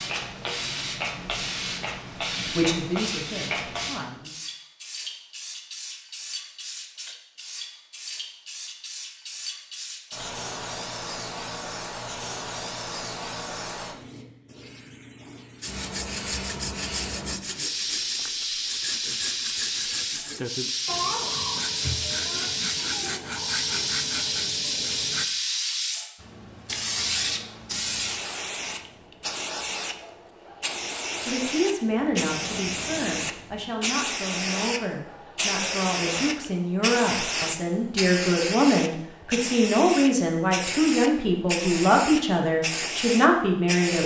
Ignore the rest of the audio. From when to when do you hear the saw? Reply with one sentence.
You can hear the saw from 15.6 to 25.2 s.